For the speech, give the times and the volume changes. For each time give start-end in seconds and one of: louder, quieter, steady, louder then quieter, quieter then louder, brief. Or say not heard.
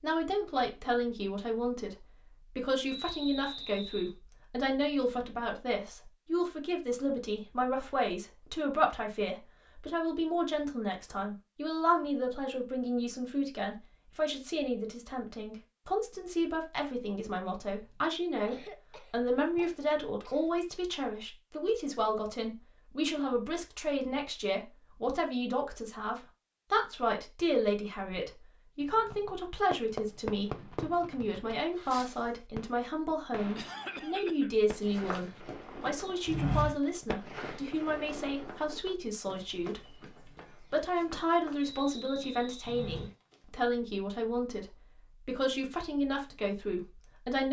0.0-47.4 steady.